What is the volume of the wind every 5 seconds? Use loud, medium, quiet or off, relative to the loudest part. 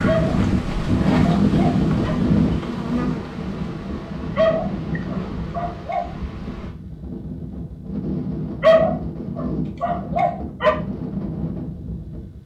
loud, medium, medium.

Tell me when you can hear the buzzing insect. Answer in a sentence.
You can hear the buzzing insect from 0.0 to 6.8 s.